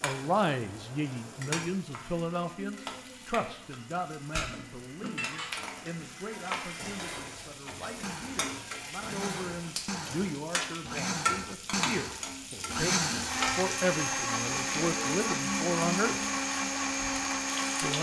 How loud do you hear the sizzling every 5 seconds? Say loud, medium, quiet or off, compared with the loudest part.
medium, medium, loud, loud.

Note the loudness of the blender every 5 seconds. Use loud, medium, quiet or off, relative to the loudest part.
quiet, medium, loud, loud.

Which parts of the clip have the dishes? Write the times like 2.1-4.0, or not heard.
4.3-10.3.